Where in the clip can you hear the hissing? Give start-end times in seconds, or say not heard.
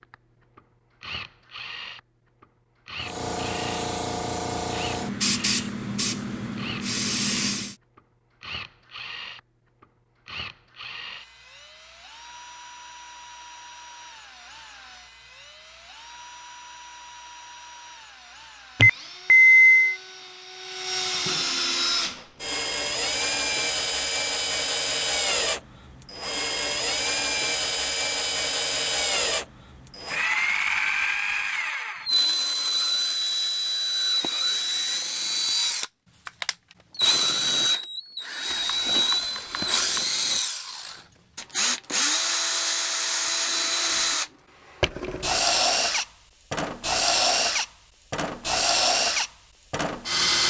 3.0-7.8.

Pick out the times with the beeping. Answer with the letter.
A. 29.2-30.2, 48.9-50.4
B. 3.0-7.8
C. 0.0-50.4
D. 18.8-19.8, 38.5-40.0
D.